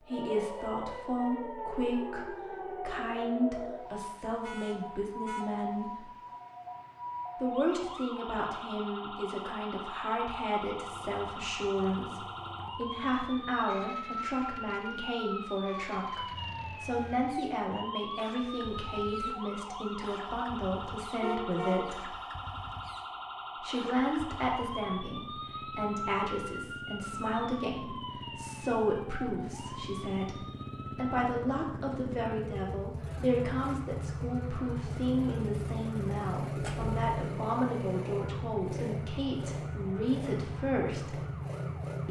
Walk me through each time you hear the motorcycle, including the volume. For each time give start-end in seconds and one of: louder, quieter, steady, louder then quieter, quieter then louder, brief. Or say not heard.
10.7-42.0 louder.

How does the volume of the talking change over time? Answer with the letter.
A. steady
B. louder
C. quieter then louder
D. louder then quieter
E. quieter
A.